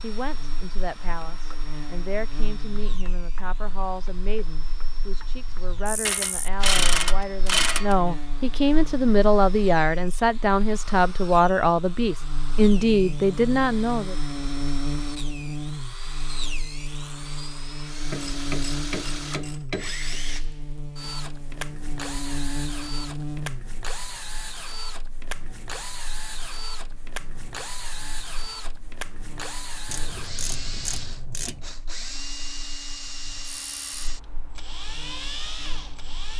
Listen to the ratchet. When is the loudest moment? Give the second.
7 s.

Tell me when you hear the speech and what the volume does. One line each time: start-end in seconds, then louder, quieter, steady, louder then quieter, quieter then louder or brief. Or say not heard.
0.0-14.2 louder.